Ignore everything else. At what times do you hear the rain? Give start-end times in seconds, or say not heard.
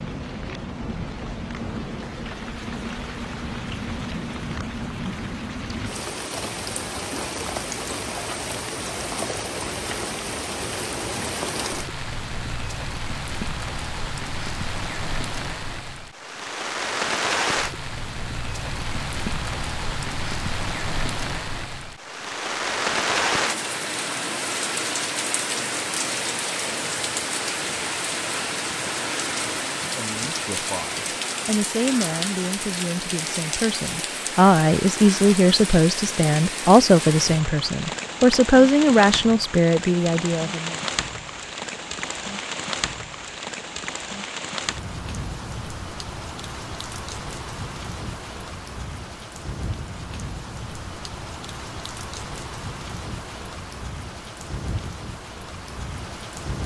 0.0-56.6.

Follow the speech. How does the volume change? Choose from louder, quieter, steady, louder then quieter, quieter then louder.
louder.